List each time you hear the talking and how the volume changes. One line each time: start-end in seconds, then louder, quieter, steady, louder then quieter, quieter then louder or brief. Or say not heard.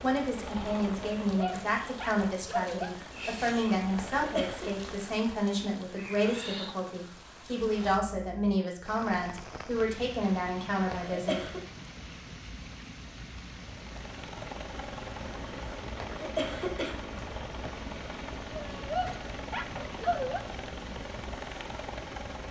0.0-11.5 steady.